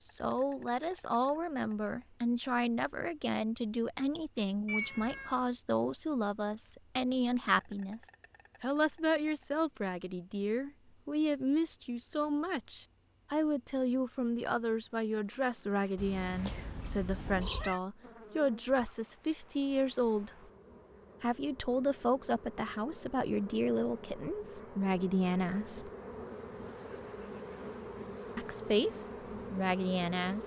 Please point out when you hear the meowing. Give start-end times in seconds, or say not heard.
4.7-5.5, 15.9-17.8.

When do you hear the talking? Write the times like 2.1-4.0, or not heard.
0.1-8.0, 8.6-20.3, 21.2-25.9, 28.4-30.4.